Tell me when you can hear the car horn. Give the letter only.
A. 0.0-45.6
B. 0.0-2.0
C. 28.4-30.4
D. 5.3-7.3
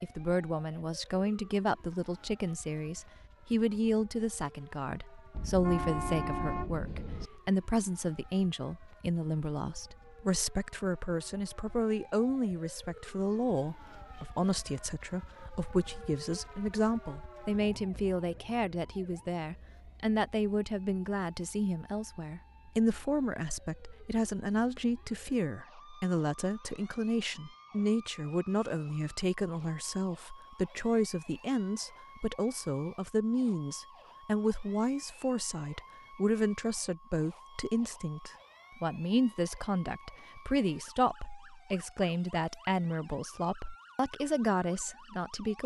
D.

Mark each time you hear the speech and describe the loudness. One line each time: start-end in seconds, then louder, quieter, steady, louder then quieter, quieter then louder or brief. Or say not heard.
0.0-45.6 steady.